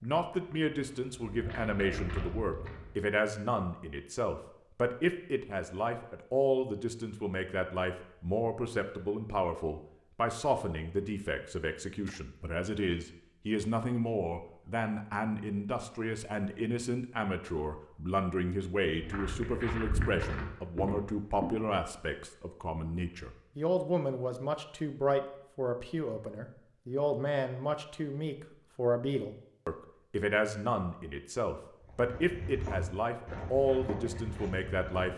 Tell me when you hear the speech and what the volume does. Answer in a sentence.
The speech can be heard from 0.0 to 35.1 s, at a steady volume.